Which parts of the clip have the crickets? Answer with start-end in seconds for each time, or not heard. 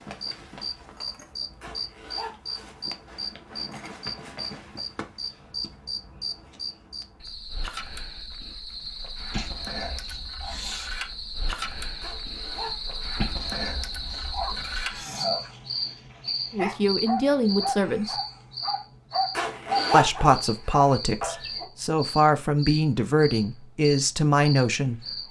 0.0-25.2.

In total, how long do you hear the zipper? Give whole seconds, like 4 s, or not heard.
3 s.